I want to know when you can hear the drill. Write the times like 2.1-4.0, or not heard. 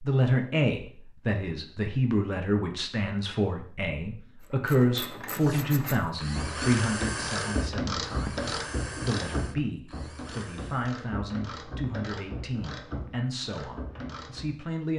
5.4-10.9.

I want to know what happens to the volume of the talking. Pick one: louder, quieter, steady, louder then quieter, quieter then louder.
quieter.